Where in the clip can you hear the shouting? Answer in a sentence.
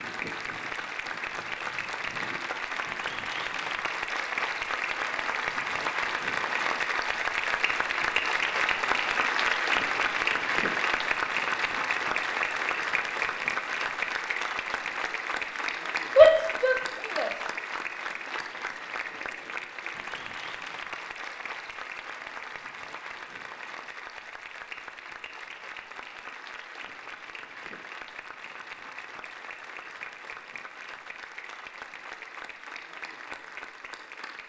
The shouting can be heard from 16.1 to 17.3 s.